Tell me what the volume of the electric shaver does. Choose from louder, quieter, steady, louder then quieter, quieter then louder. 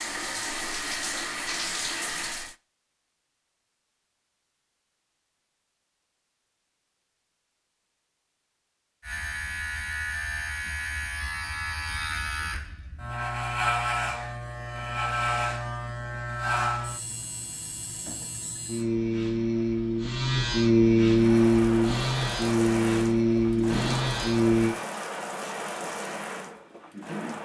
louder.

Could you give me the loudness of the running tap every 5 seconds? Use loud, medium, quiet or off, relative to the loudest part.
loud, off, off, off, loud, loud.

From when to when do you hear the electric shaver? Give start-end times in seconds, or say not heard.
9.0-24.8.